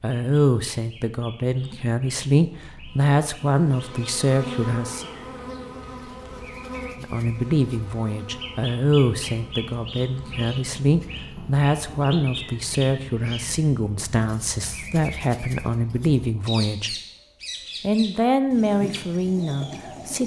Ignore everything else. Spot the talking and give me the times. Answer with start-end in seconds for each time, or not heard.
0.0-5.0, 7.0-16.9, 17.8-20.2.